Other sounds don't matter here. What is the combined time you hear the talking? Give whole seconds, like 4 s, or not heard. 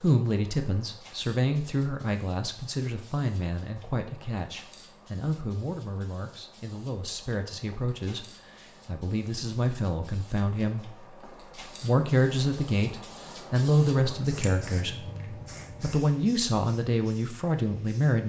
17 s.